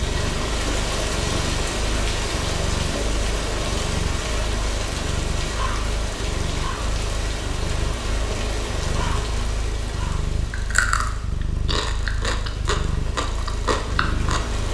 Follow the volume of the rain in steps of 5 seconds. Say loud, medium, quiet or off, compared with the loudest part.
loud, loud, medium.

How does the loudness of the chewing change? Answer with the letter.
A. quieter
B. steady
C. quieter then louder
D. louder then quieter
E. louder
B.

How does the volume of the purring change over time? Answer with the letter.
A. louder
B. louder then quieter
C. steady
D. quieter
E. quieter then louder
C.